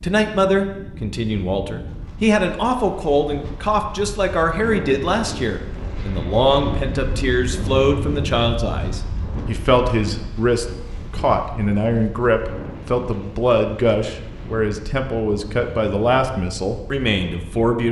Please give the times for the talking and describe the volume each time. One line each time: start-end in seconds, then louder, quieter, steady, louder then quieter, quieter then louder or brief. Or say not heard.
0.0-17.8 steady.